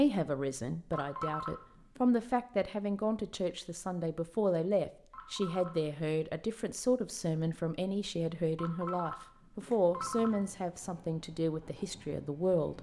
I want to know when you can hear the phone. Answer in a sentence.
You can hear the phone from 0.9 to 2.0 s, from 5.1 to 6.0 s and from 8.6 to 10.4 s.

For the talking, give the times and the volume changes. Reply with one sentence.
You can hear the talking from 0.0 to 12.7 s, at a steady volume.